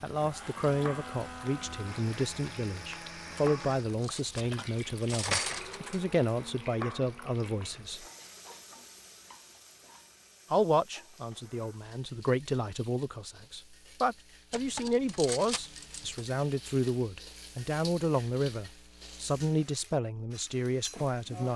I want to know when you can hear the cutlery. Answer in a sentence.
The cutlery can be heard from 3.6 to 6.0 s and from 14.5 to 16.2 s.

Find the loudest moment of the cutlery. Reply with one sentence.
The volume of the cutlery peaks at 5 seconds.